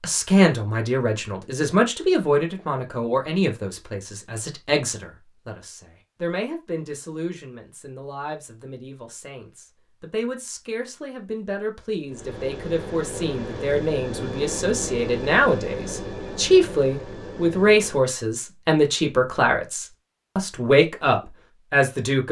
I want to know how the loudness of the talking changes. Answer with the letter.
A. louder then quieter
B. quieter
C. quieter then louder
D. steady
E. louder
C.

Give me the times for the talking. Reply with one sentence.
You can hear the talking from 0.0 to 22.2 s.